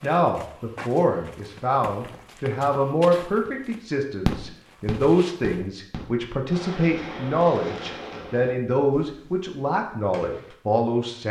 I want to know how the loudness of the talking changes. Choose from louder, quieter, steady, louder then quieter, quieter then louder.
steady.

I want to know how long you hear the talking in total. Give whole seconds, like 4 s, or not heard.
11 s.